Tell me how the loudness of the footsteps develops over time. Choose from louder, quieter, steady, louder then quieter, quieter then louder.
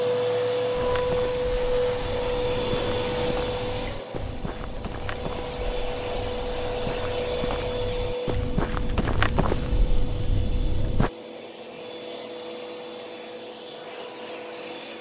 louder.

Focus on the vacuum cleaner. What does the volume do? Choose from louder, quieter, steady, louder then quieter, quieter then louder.
quieter.